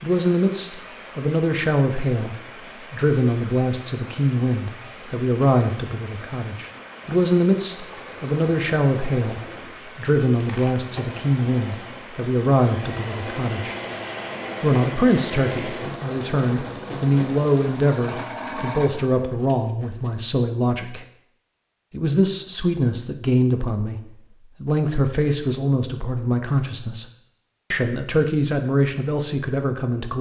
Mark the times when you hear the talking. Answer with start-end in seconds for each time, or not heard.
0.0-13.8, 14.6-21.1, 21.9-24.0, 24.6-27.1, 27.7-30.1.